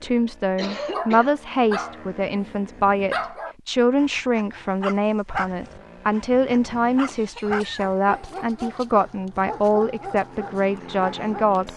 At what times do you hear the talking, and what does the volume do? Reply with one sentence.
The talking can be heard from 0.0 to 11.7 s, at a steady volume.